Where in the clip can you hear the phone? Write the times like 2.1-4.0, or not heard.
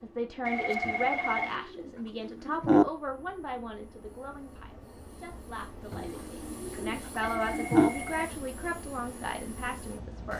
0.5-1.6, 7.3-8.3.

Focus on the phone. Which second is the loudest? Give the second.
1 s.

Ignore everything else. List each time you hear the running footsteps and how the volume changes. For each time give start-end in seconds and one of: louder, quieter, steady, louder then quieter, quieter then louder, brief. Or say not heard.
not heard.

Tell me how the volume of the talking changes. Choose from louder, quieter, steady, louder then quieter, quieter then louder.
quieter then louder.